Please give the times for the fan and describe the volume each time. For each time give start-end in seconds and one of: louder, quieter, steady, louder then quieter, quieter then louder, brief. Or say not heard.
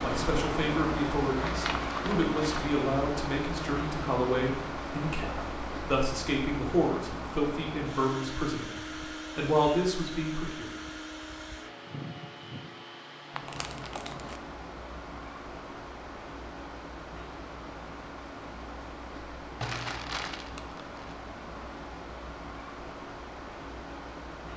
0.0-24.5 quieter.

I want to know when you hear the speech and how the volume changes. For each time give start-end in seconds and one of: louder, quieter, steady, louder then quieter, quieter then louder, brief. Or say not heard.
0.0-10.7 steady.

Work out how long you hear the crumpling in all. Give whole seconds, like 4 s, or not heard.
4 s.